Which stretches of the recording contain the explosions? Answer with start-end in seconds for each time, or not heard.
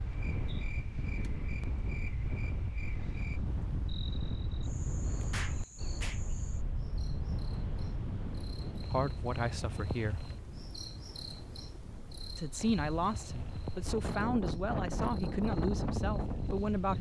5.3-6.2.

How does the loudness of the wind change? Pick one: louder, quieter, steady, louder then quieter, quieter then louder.
quieter then louder.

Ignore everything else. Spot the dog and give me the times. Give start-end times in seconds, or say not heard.
not heard.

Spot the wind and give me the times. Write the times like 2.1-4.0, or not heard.
0.0-16.9.